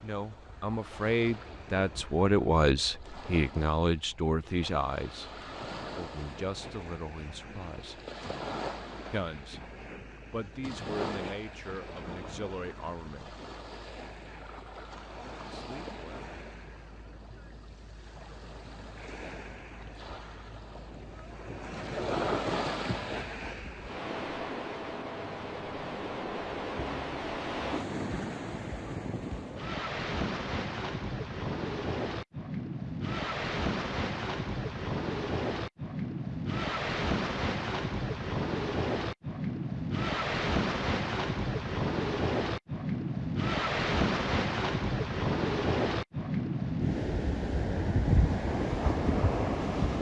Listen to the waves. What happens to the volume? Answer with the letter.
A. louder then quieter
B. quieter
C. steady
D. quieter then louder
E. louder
E.